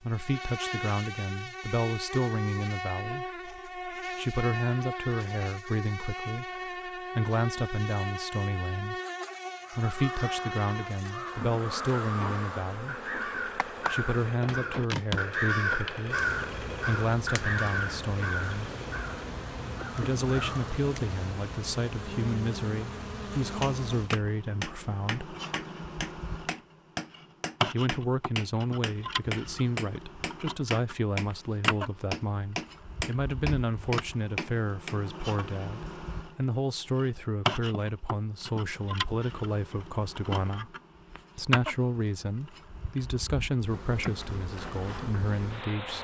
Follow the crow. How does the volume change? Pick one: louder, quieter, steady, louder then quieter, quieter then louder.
louder then quieter.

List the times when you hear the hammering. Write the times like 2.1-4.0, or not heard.
23.6-35.0.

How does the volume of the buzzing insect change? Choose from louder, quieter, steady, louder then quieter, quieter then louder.
steady.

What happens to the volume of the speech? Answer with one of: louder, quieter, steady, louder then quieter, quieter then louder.
steady.